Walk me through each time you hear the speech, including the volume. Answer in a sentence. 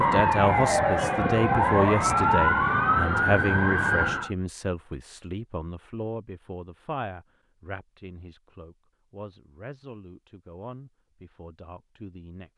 You can hear the speech from 0.0 to 12.5 s, getting quieter.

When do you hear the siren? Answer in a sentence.
The siren can be heard from 0.0 to 4.3 s.